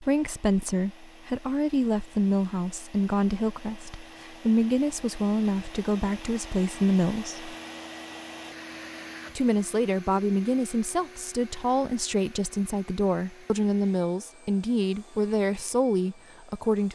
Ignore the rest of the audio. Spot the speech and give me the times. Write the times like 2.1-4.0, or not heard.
0.0-7.5, 9.3-16.9.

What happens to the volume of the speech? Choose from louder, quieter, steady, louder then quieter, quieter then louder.
steady.